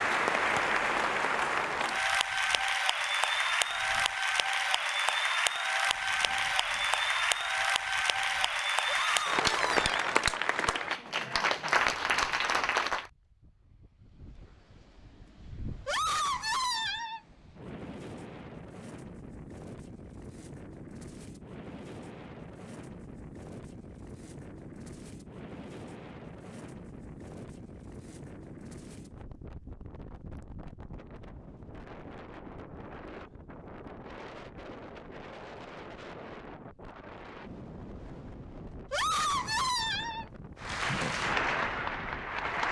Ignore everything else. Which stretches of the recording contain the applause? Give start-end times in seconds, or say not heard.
0.0-13.1, 40.6-42.6.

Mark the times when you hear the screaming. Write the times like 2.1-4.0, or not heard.
8.8-10.0, 15.8-17.2, 38.9-40.2.